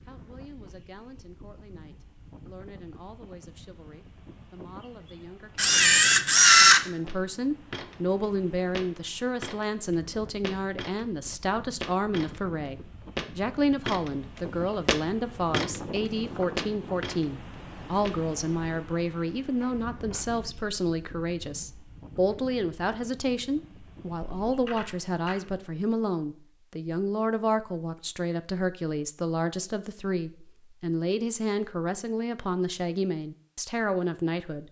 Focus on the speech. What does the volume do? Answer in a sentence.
The volume of the speech goes up.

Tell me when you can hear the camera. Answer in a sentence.
The camera can be heard from 5.5 to 6.8 s, from 19.6 to 20.2 s and from 24.4 to 25.4 s.